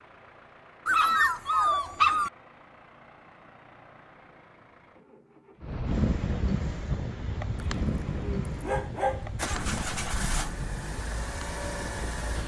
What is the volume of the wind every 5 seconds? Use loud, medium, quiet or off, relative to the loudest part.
off, loud, medium.